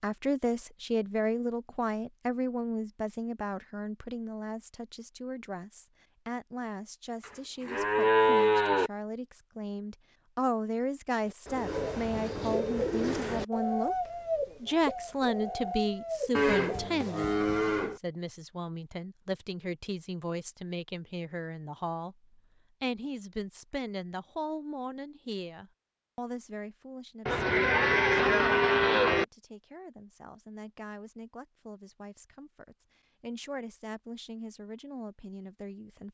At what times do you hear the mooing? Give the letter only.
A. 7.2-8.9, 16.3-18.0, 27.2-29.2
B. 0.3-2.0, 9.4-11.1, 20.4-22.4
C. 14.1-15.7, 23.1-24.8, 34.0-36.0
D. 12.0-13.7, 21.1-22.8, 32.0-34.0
A.